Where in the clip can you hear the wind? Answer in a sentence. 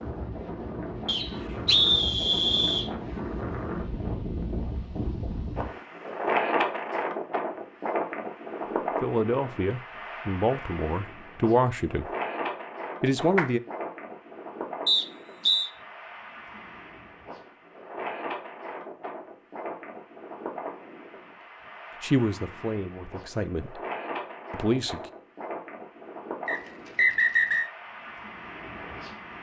The wind can be heard from 0.0 to 29.3 s.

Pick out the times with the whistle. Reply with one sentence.
The whistle can be heard from 1.1 to 2.9 s, from 14.8 to 15.7 s and from 26.4 to 27.7 s.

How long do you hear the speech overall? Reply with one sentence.
The speech can be heard for 6 seconds in total.